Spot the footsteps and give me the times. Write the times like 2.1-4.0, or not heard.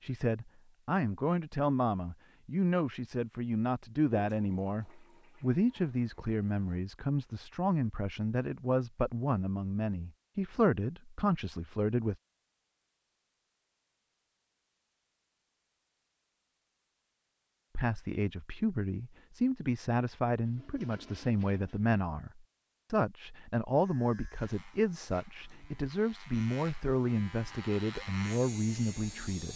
not heard.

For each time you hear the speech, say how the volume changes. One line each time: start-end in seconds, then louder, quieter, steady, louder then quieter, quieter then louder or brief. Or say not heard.
0.0-12.2 steady
17.8-29.5 steady.